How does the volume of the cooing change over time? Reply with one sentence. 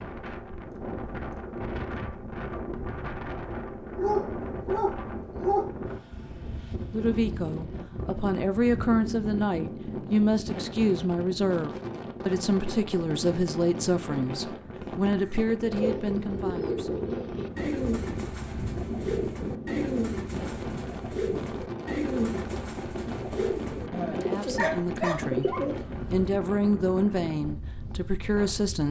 The loudness of the cooing stays about the same.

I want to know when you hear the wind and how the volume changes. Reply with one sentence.
The wind can be heard from 0.0 to 28.8 s, at a steady volume.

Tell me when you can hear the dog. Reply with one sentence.
The dog can be heard from 3.9 to 5.7 s and from 24.6 to 26.3 s.